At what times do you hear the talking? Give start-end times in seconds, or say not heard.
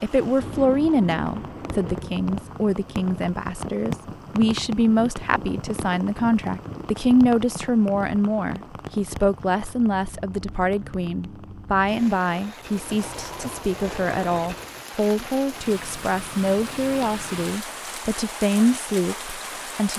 0.0-19.9.